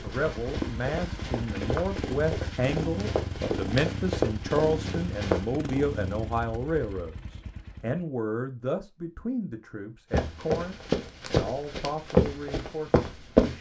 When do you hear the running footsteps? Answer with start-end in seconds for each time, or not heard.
0.0-5.5, 10.1-13.5.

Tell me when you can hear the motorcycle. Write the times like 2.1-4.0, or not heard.
0.0-8.1.